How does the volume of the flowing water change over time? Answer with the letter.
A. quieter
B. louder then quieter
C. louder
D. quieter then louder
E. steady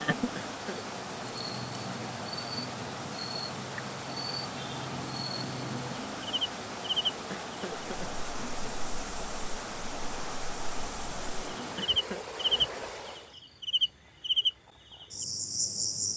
E.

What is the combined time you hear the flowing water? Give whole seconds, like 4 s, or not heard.
13 s.